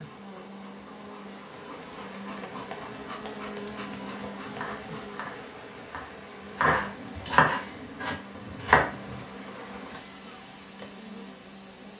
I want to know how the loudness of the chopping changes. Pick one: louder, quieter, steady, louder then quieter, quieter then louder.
louder then quieter.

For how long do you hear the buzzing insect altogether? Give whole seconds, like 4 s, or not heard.
12 s.